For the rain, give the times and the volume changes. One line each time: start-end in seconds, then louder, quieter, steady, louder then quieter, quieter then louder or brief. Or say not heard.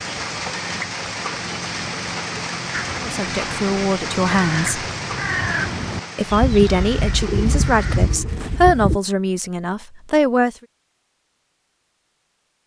0.0-8.2 quieter.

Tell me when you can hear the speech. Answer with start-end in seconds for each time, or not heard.
3.0-4.8, 6.2-10.6.